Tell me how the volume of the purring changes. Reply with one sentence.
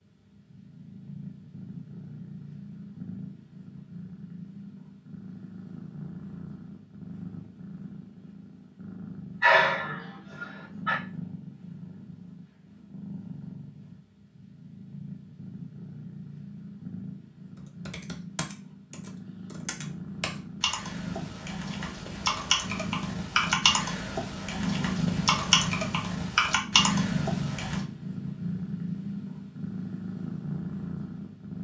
The volume of the purring goes up.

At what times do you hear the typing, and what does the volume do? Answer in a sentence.
You can hear the typing from 17.6 to 27.8 s, getting louder.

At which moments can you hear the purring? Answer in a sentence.
The purring can be heard from 0.0 to 31.5 s.